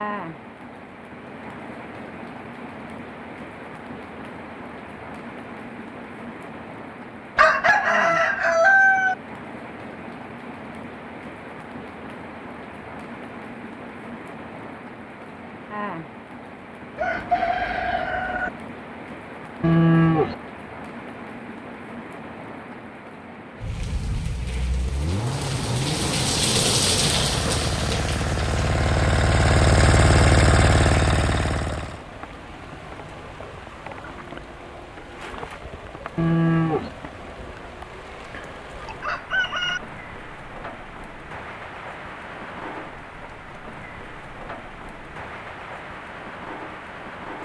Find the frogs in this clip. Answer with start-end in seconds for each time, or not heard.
not heard.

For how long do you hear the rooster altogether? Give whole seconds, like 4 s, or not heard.
4 s.